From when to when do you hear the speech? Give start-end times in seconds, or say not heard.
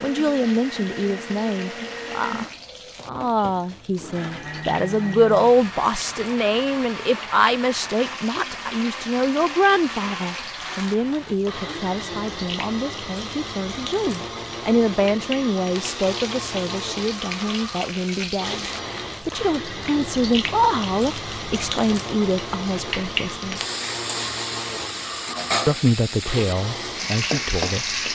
0.0-18.6, 19.2-23.6, 25.6-27.9.